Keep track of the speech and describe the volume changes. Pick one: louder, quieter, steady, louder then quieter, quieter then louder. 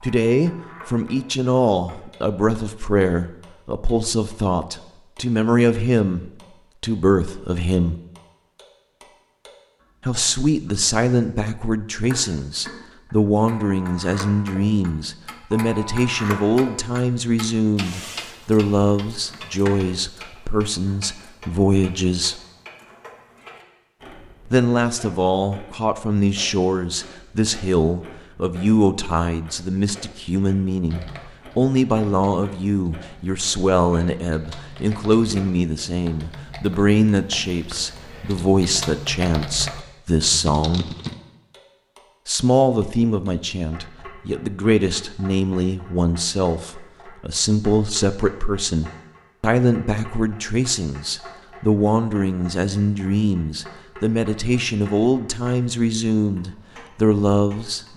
steady.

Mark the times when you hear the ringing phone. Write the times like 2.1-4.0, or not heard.
not heard.